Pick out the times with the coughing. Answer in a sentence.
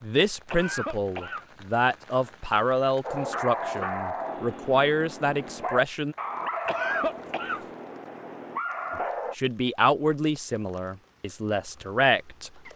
You can hear the coughing from 0.5 to 1.4 s and from 6.7 to 7.7 s.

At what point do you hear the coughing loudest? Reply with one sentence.
The volume of the coughing peaks at 7 seconds.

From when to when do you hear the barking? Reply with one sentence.
The barking can be heard from 3.0 to 9.3 s.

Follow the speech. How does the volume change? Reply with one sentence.
The volume of the speech stays about the same.